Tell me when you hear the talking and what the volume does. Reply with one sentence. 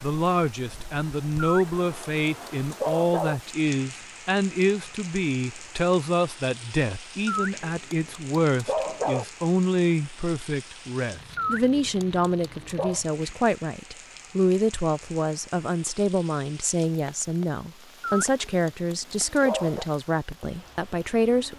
You can hear the talking from 0.0 to 21.5 s, at a steady volume.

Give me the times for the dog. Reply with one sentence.
The dog can be heard from 1.4 to 3.4 s, from 7.2 to 9.2 s, from 11.3 to 13.0 s and from 18.0 to 19.9 s.